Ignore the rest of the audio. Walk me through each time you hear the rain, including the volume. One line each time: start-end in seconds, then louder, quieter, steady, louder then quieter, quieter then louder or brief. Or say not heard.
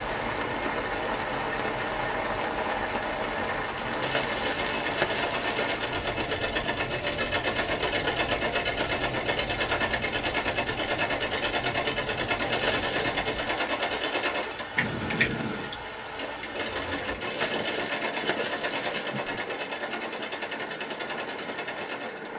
0.0-22.3 quieter.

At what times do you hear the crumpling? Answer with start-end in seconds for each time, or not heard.
3.9-5.8, 12.4-13.2, 17.1-19.1.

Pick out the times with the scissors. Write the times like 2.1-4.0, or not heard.
14.8-15.8.